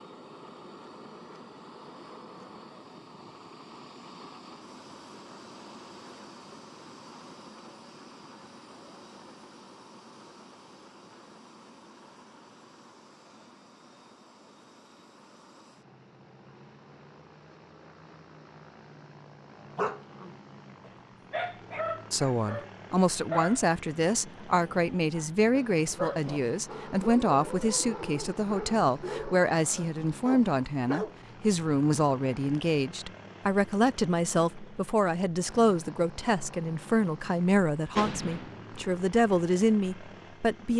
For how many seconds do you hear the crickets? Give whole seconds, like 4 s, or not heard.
not heard.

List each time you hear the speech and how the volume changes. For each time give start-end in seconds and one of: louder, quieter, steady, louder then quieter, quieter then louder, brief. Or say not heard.
22.1-40.7 steady.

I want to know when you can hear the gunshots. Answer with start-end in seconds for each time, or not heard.
38.0-38.9.